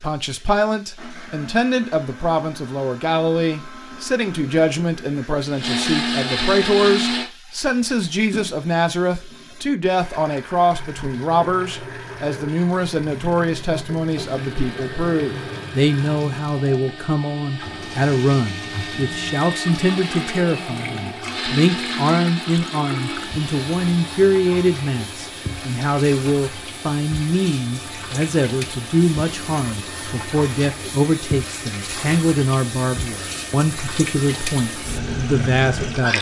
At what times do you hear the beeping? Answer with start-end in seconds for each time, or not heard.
not heard.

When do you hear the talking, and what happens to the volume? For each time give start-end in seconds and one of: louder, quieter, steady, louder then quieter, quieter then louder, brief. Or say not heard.
0.0-36.1 steady.